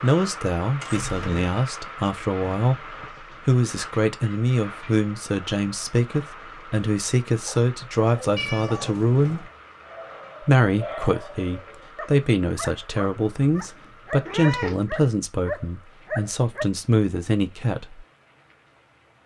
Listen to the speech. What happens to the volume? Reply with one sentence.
The volume of the speech stays about the same.